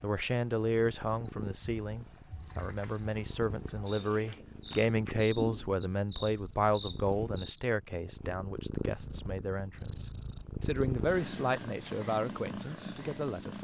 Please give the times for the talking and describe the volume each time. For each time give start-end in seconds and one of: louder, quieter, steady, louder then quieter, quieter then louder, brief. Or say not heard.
0.0-13.5 quieter then louder.